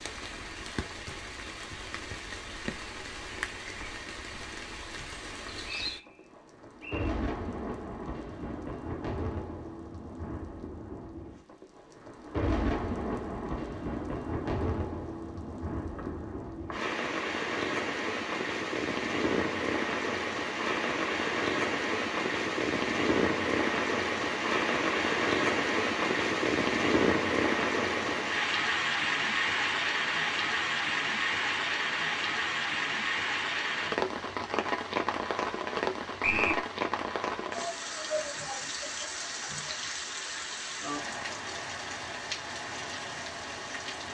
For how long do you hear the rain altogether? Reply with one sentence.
The rain can be heard for 44 seconds in total.